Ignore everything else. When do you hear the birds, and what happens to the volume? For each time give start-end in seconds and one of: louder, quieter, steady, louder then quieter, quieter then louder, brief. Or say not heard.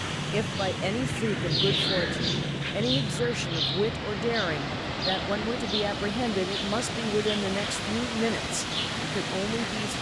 0.0-9.9 quieter.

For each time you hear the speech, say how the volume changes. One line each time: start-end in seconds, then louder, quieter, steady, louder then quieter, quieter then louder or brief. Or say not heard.
0.3-9.9 steady.